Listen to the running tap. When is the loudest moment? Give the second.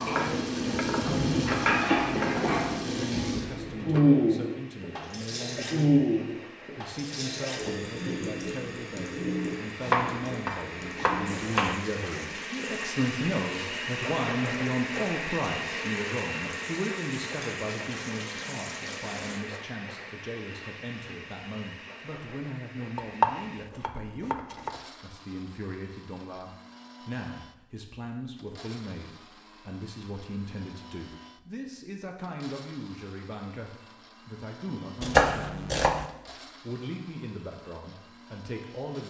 4 s.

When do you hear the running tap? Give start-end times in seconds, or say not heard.
0.0-19.4.